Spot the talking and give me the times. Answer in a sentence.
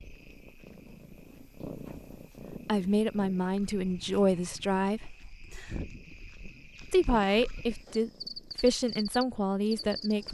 You can hear the talking from 2.6 to 5.2 s and from 6.9 to 10.2 s.